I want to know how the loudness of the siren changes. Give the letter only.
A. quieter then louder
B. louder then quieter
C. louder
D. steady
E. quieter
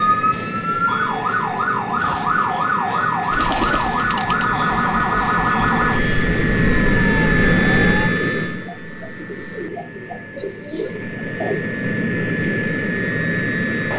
E.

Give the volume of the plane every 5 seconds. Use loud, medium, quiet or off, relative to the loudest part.
medium, loud, loud.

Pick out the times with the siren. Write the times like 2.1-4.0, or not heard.
0.0-8.1.